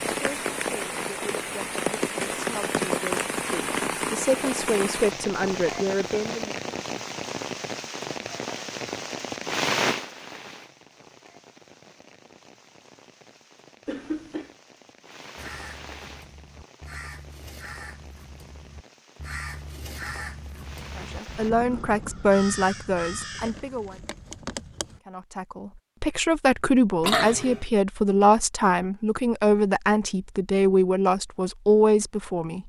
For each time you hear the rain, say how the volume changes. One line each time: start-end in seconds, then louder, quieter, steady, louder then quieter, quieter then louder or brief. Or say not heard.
0.0-21.5 quieter.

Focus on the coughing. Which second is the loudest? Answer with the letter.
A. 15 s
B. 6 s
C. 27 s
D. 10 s
C.